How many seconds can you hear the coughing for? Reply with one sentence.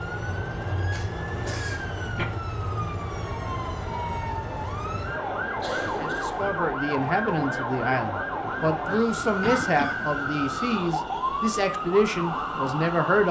The coughing can be heard for 3 seconds in total.